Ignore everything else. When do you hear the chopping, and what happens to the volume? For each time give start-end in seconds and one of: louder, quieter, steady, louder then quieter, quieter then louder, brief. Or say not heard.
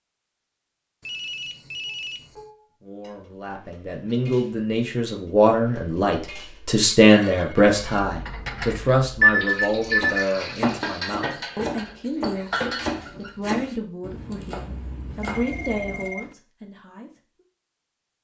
9.9-16.1 quieter.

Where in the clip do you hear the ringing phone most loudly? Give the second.
9 s.